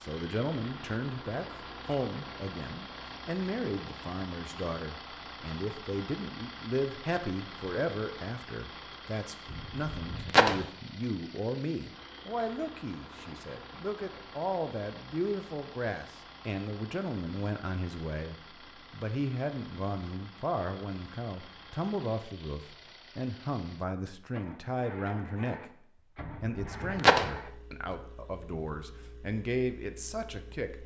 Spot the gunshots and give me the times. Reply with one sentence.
The gunshots can be heard from 9.5 to 10.7 s and from 26.2 to 27.4 s.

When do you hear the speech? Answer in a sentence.
You can hear the speech from 0.0 to 25.7 s and from 26.4 to 30.8 s.